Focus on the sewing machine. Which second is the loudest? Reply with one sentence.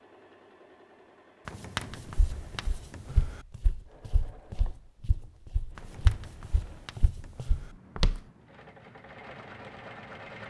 The volume of the sewing machine peaks at 10 seconds.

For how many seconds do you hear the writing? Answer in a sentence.
You can hear the writing for 4 seconds altogether.